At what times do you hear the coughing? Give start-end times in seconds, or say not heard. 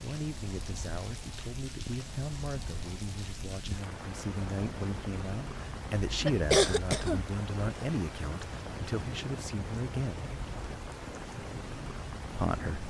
6.0-7.3.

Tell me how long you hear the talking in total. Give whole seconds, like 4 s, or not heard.
11 s.